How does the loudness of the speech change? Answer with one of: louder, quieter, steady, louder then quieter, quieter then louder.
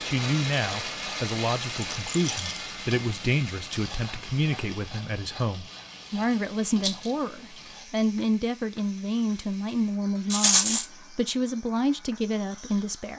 steady.